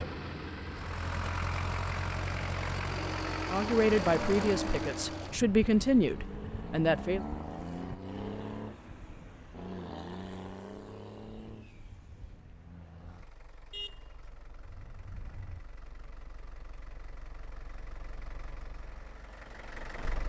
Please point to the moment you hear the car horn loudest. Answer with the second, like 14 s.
14 s.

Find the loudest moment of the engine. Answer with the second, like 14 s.
4 s.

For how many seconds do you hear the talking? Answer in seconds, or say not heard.
4 s.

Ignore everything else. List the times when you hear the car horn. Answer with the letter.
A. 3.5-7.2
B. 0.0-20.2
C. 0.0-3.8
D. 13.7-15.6
D.